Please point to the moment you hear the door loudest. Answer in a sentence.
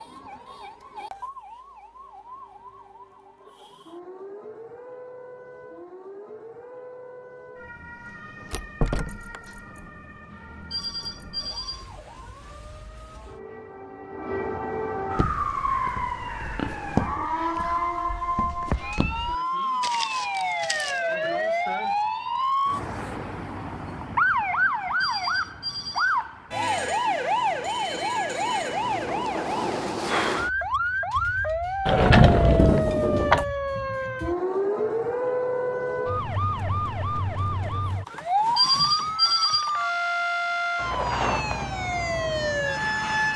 The volume of the door peaks at 32 seconds.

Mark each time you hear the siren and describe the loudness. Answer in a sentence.
The siren can be heard from 0.0 to 43.3 s, getting louder.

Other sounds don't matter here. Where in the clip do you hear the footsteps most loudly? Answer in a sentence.
The volume of the footsteps peaks at 17 seconds.